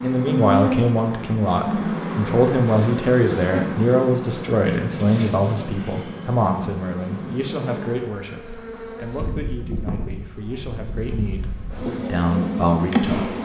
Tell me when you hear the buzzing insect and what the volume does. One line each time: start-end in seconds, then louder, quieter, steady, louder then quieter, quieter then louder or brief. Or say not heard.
0.0-13.4 quieter then louder.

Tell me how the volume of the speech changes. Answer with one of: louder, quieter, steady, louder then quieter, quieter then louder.
quieter then louder.